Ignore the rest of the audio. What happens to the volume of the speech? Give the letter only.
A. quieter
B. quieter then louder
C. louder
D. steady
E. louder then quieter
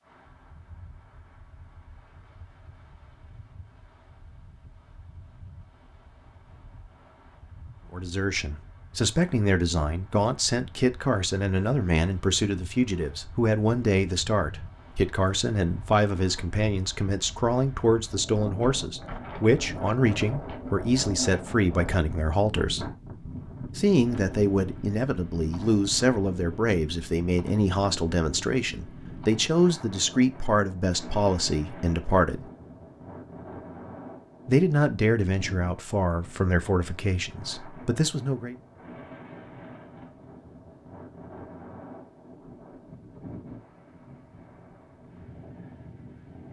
D.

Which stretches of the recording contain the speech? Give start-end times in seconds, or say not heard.
7.9-22.9, 23.8-32.5, 34.5-38.5.